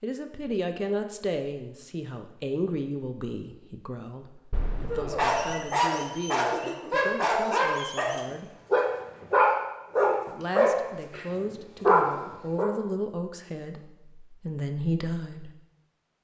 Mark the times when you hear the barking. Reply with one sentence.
The barking can be heard from 4.9 to 12.7 s.